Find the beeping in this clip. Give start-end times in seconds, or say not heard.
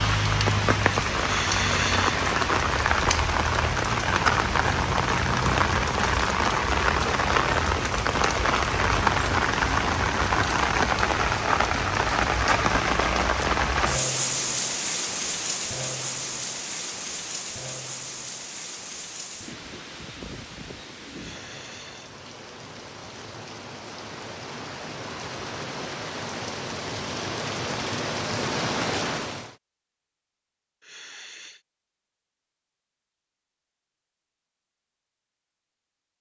not heard.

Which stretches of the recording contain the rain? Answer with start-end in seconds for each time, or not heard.
0.0-29.6.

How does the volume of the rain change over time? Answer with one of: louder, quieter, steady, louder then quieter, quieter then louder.
quieter then louder.